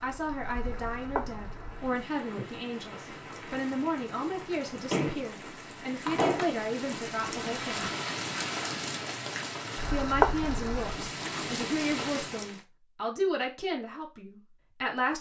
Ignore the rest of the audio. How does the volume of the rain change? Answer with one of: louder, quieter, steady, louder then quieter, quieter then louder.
louder.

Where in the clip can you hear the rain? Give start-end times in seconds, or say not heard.
0.0-12.6.